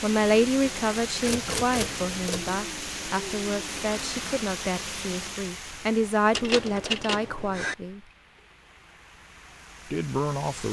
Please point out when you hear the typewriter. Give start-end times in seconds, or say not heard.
1.2-2.5, 6.3-7.8.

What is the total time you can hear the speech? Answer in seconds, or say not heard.
9 s.